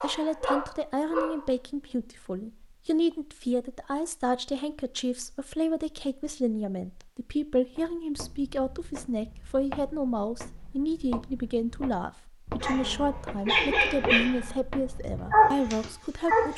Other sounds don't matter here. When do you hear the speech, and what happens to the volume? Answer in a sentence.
The speech can be heard from 0.0 to 16.5 s, at a steady volume.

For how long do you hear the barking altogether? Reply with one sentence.
You can hear the barking for 5 seconds altogether.